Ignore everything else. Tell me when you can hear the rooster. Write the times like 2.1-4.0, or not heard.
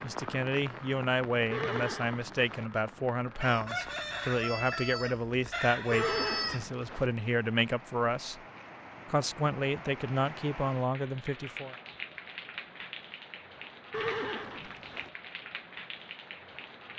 3.4-6.7.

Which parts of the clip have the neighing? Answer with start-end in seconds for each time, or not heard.
1.5-2.7, 5.9-7.1, 13.9-15.1.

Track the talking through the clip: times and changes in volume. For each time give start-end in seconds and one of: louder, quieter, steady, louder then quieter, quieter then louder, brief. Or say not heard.
0.0-8.4 steady
9.1-11.8 brief.